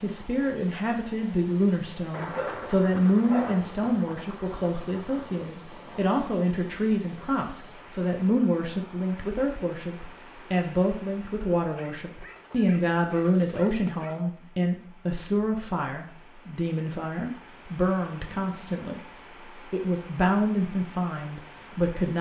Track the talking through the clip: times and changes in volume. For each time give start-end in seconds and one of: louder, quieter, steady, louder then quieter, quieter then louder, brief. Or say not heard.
0.0-22.1 steady.